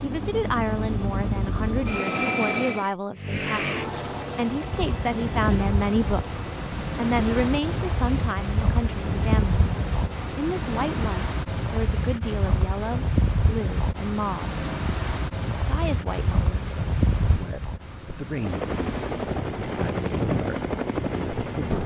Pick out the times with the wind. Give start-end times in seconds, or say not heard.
4.6-21.8.